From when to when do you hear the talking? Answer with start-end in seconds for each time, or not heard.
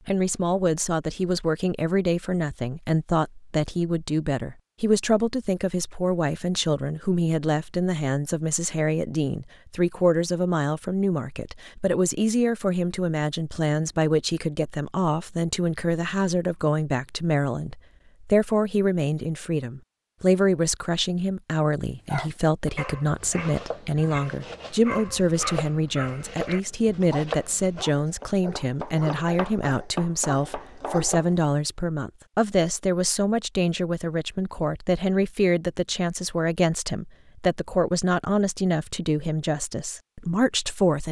0.1-41.0.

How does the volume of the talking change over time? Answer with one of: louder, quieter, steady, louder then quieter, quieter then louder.
steady.